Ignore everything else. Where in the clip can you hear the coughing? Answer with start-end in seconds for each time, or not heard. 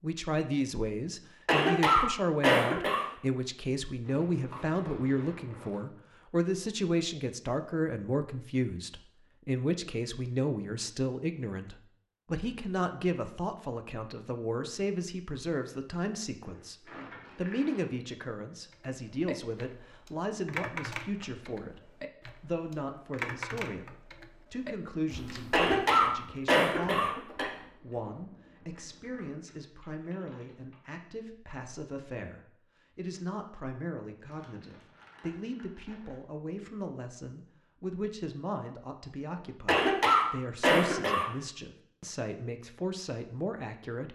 1.4-3.0, 25.5-27.5, 39.6-41.2.